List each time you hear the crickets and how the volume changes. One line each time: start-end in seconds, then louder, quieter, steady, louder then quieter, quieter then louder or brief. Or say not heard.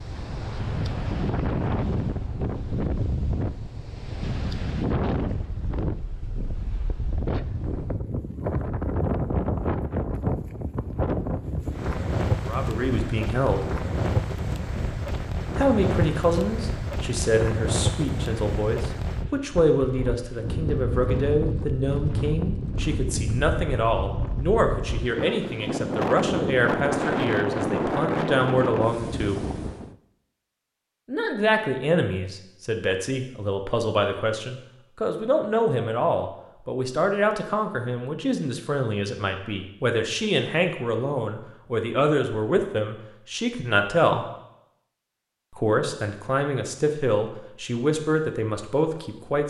not heard.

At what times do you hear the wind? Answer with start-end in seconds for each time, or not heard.
0.0-29.9.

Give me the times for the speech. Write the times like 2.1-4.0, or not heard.
12.4-13.7, 15.6-29.4, 31.1-44.2, 45.5-49.4.